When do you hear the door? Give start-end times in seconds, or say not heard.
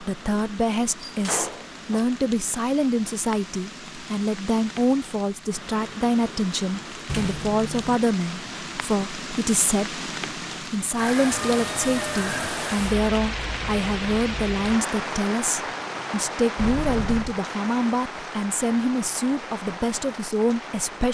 1.1-2.0, 7.0-8.0, 16.6-17.4.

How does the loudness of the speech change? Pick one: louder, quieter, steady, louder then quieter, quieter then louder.
steady.